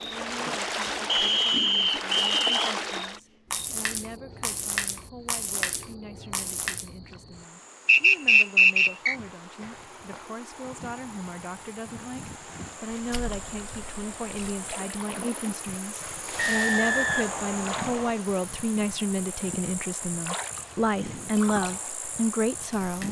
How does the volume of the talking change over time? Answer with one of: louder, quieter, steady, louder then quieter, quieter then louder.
louder.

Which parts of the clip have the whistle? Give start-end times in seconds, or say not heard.
1.1-2.5, 7.8-9.2, 16.4-18.1.